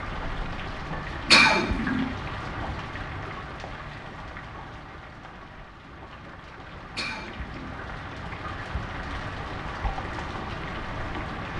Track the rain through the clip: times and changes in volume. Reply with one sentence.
The rain can be heard from 0.0 to 11.5 s, getting quieter then louder.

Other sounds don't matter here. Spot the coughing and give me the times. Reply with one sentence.
You can hear the coughing from 1.2 to 2.0 s and from 7.0 to 7.7 s.